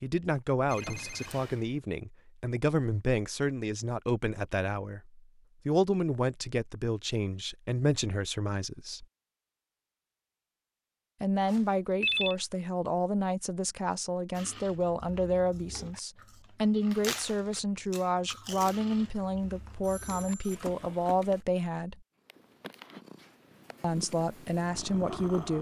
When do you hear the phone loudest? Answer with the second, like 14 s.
12 s.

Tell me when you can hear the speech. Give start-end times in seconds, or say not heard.
0.0-9.1, 11.2-22.0, 23.8-25.5.